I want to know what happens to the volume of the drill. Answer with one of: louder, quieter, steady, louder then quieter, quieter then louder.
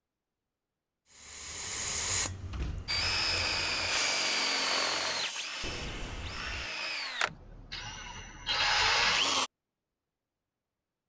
quieter then louder.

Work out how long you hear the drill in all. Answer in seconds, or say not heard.
7 s.